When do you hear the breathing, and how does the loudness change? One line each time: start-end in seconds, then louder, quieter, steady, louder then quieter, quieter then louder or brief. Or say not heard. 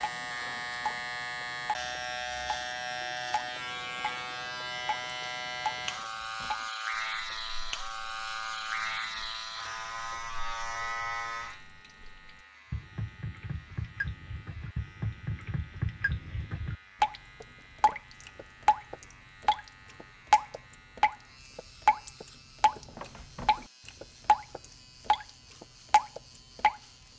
not heard.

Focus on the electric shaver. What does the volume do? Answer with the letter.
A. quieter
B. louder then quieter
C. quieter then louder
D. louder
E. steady
A.